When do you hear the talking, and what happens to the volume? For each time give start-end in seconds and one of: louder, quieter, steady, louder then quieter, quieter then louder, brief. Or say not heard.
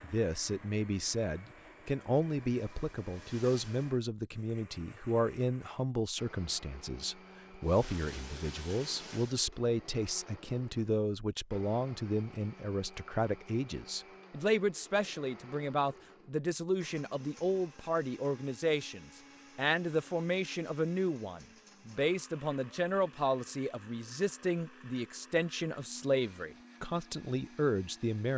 0.0-28.3 steady.